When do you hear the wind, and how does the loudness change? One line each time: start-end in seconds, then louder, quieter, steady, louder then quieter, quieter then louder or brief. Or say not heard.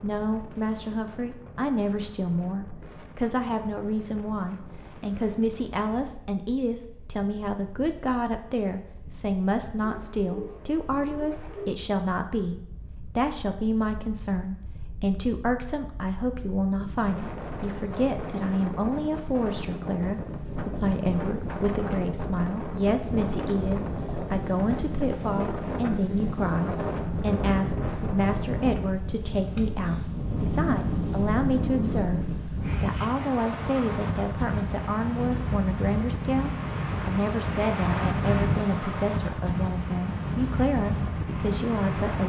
0.0-42.2 louder.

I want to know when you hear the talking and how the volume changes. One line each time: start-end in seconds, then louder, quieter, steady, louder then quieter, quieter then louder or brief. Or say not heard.
0.0-42.2 steady.